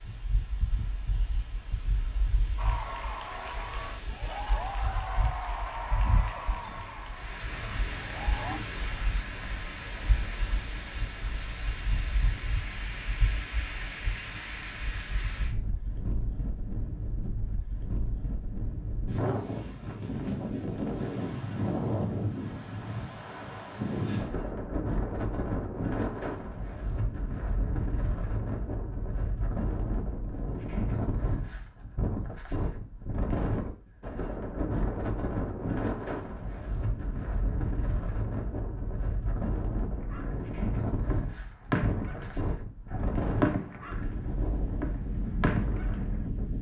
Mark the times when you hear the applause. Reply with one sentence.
You can hear the applause from 2.5 to 8.6 s.